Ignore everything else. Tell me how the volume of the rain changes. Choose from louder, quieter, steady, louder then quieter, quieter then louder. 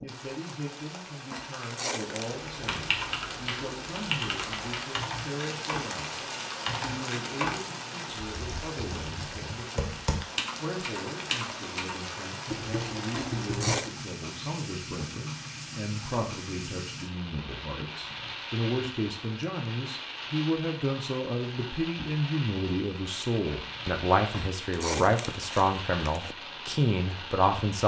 steady.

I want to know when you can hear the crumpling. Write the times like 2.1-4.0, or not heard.
1.3-2.4, 13.1-13.9, 24.3-26.4.